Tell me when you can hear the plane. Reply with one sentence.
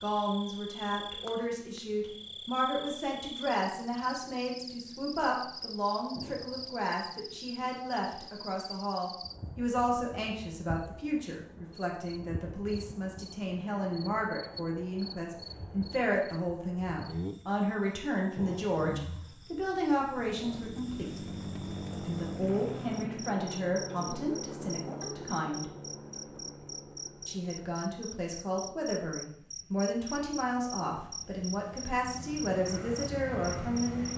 The plane can be heard from 20.2 to 34.1 s.